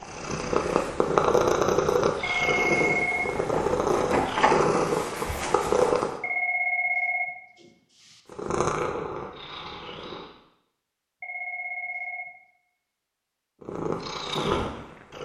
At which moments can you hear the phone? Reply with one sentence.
The phone can be heard from 2.2 to 3.3 s, from 6.2 to 8.2 s and from 11.2 to 12.3 s.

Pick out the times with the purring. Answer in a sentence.
You can hear the purring from 0.0 to 6.2 s, from 8.3 to 10.3 s and from 13.6 to 15.1 s.